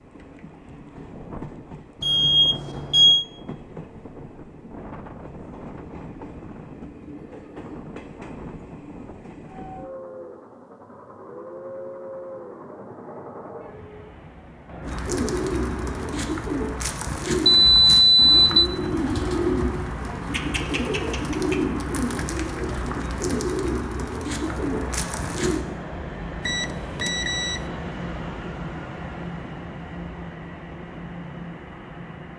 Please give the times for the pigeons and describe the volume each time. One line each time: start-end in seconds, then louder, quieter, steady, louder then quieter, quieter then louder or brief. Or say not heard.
14.8-25.6 steady.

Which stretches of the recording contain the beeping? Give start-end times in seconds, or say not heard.
2.0-3.2, 17.4-18.7, 26.4-27.6.